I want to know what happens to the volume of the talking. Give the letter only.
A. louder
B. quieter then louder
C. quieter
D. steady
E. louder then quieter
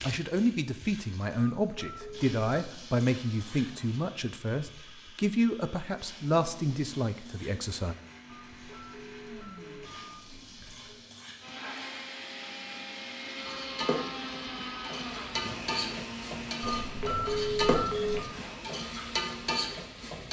D.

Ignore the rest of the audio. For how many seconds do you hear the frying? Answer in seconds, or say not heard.
20 s.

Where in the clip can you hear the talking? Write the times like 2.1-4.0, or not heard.
0.0-8.0.